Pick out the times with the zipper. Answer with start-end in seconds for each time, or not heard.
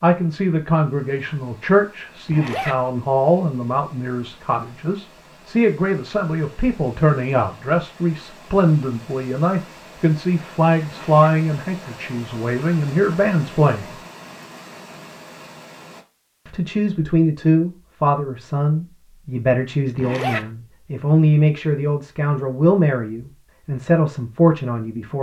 2.2-2.8, 10.8-11.3, 19.9-20.4.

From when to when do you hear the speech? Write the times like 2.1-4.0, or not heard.
0.0-14.0, 16.4-25.1.